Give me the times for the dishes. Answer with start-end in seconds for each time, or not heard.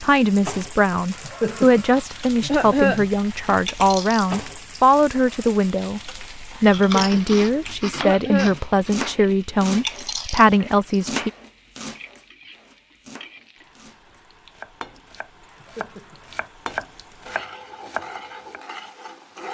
not heard.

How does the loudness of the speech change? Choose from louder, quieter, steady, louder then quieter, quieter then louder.
steady.